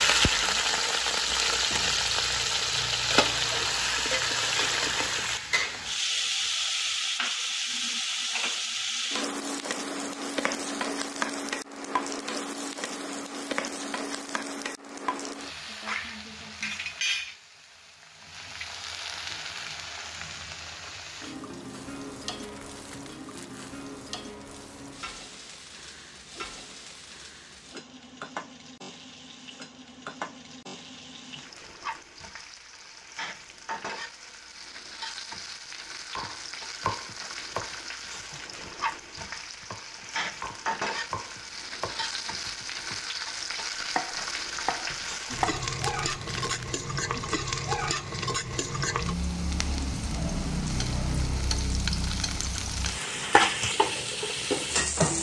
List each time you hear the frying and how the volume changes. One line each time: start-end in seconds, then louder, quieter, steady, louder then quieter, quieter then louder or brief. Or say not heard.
0.0-55.1 quieter then louder.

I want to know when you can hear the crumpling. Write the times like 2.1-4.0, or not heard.
22.4-23.9, 45.3-46.7.